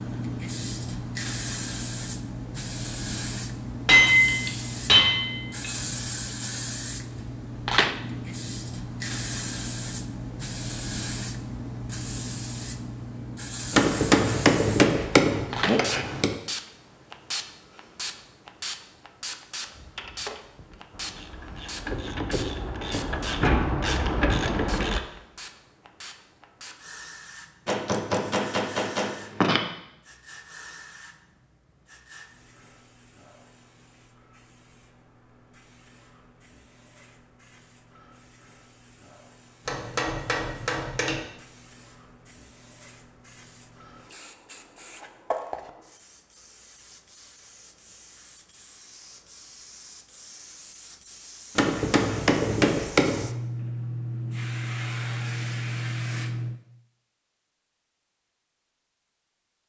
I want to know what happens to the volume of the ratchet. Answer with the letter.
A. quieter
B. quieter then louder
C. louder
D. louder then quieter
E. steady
C.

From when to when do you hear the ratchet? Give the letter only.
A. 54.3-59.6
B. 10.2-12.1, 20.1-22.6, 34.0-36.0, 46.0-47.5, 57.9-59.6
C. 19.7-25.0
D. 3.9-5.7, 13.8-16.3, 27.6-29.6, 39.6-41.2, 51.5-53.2
C.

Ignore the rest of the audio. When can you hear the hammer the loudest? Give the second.
4 s.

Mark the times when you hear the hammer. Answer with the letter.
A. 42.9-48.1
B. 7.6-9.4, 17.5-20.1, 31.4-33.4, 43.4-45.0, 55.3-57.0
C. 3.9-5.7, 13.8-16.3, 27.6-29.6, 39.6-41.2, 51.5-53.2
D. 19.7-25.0
C.